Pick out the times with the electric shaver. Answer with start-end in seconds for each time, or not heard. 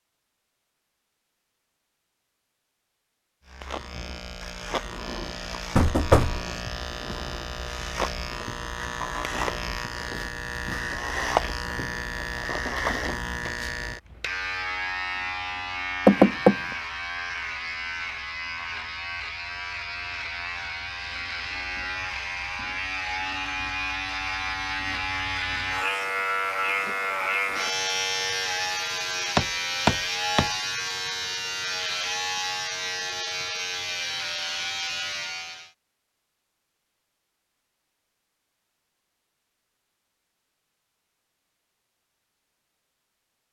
3.5-35.7.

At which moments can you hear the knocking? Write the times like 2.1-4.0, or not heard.
5.8-6.5, 16.1-16.6, 29.4-30.4.